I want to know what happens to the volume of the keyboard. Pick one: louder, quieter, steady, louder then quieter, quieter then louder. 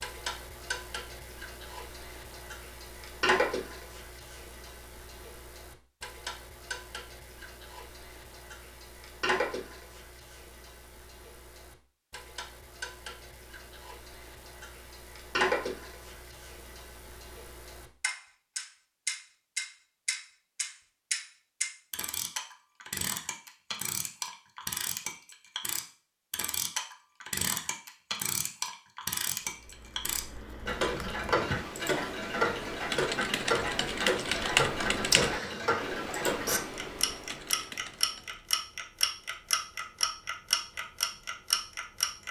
louder then quieter.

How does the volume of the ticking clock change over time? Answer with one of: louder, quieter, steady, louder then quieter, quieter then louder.
louder.